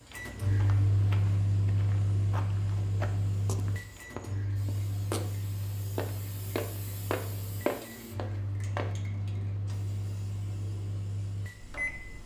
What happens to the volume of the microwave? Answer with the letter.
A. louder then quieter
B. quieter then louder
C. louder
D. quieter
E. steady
D.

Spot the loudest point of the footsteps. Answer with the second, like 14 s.
8 s.